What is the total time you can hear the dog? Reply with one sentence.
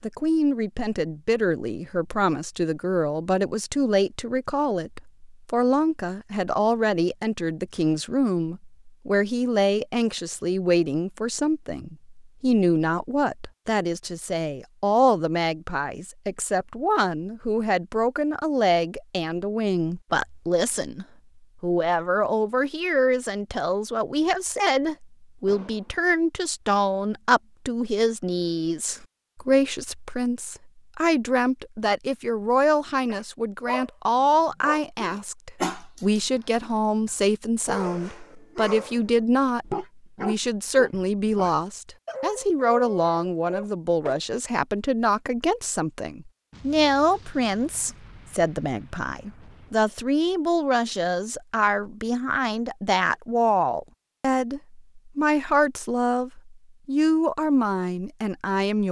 The dog can be heard for 11 seconds in total.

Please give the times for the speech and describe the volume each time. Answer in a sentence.
You can hear the speech from 0.0 to 58.8 s, at a steady volume.